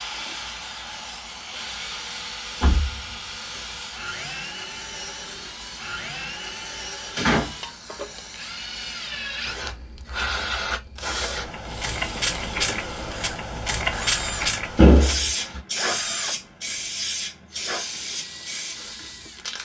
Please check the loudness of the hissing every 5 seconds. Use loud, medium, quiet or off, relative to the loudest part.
quiet, quiet, loud, loud.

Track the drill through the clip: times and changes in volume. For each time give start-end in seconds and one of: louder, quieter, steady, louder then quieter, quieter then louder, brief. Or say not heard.
0.0-19.4 steady.